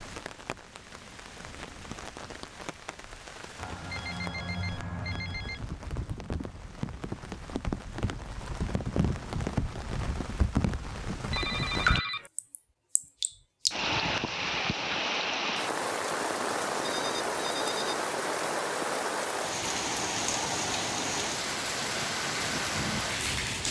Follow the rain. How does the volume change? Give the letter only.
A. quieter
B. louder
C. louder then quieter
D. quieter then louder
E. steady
B.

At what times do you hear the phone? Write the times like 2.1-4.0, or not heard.
3.5-5.6, 11.3-12.3, 16.8-17.9.